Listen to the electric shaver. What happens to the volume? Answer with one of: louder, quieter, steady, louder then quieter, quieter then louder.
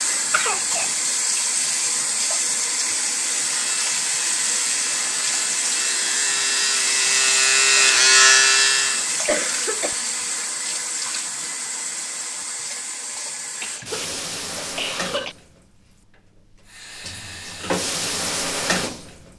louder.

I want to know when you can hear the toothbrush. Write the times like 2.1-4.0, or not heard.
not heard.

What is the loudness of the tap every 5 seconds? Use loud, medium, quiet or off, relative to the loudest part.
loud, loud, medium, medium.